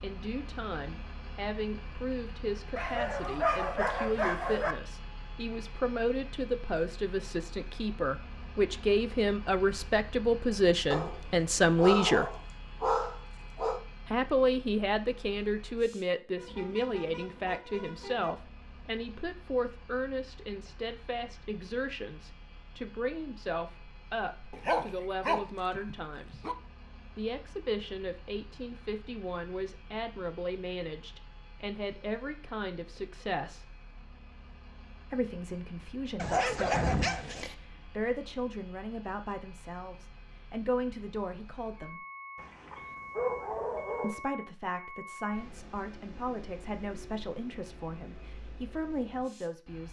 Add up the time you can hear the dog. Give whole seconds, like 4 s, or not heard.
10 s.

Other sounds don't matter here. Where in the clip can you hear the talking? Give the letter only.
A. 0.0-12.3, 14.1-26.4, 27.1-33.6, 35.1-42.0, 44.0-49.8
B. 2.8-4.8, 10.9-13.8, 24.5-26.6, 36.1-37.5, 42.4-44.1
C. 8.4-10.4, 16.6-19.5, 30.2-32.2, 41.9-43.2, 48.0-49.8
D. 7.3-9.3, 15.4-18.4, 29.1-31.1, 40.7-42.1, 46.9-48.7
A.